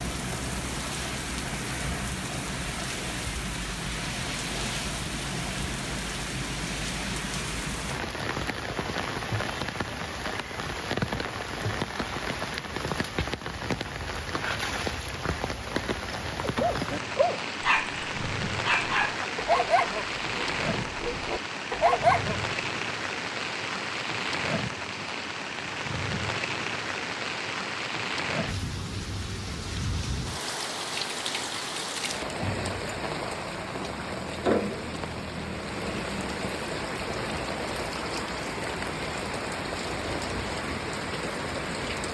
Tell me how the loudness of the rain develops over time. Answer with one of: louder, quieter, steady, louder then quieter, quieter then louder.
steady.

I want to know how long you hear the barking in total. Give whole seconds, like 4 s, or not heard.
6 s.